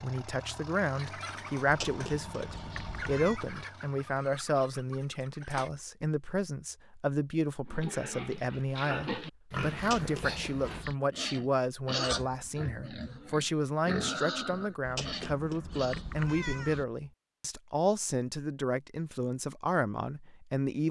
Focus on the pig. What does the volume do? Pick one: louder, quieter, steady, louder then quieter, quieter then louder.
steady.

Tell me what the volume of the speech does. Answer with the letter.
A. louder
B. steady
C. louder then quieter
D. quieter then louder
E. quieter
B.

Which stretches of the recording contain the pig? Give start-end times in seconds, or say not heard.
7.7-16.0.